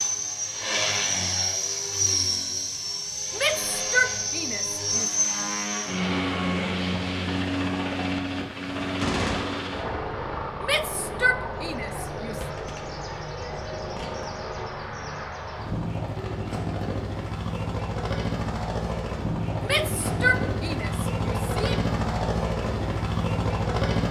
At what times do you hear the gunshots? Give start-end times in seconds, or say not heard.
9.0-9.7, 12.2-14.1.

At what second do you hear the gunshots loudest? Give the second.
9 s.